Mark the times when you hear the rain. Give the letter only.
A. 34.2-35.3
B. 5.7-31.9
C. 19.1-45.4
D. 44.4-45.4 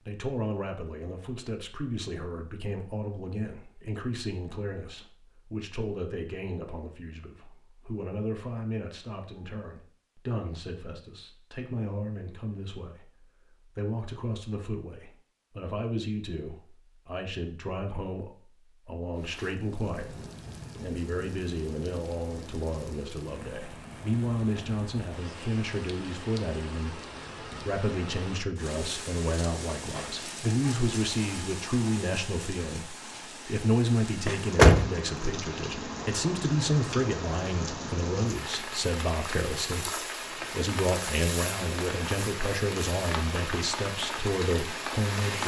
C.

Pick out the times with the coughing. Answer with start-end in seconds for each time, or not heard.
not heard.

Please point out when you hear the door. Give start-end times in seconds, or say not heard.
34.2-35.3.